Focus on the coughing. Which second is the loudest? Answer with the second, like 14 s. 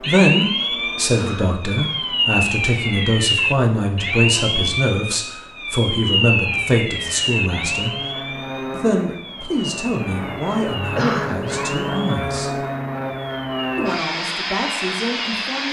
11 s.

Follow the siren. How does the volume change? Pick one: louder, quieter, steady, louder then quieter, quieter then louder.
quieter.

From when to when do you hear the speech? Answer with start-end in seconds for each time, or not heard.
0.0-8.0, 8.7-12.7, 13.8-15.6.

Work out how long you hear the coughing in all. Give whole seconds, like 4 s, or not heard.
2 s.